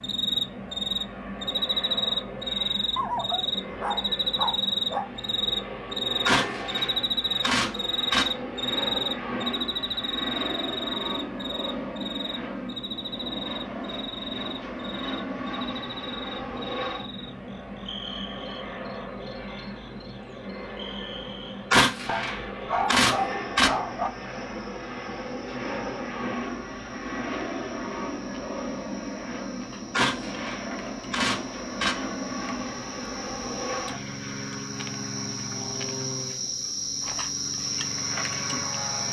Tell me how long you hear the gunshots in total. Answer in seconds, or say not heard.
6 s.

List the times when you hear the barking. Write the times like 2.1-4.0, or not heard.
3.0-5.0, 22.1-24.1.